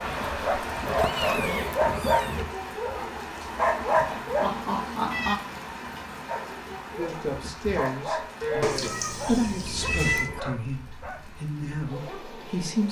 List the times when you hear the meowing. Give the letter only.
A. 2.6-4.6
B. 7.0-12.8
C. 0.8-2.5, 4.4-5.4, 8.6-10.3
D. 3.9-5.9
C.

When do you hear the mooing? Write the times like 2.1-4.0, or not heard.
8.4-10.4.